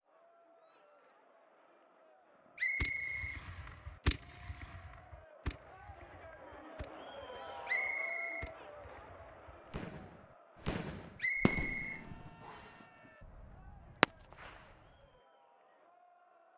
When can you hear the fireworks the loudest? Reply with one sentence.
The volume of the fireworks peaks at 14 seconds.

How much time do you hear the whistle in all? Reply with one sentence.
The whistle can be heard for 4 seconds in total.